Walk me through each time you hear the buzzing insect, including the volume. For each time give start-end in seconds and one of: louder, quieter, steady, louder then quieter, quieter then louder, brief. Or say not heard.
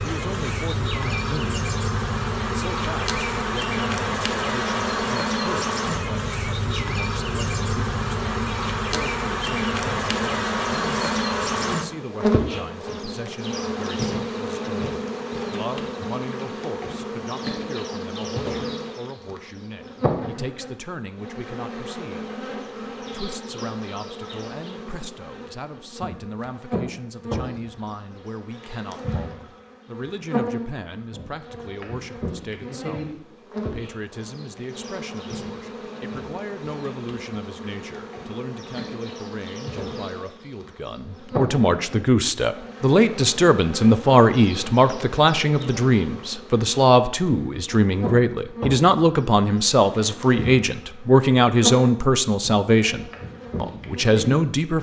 0.0-54.5 quieter.